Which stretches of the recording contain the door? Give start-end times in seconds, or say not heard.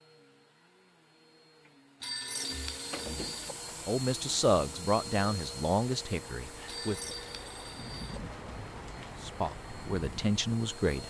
2.0-3.4.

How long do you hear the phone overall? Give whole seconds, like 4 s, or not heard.
3 s.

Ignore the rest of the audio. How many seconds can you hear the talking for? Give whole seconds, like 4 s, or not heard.
5 s.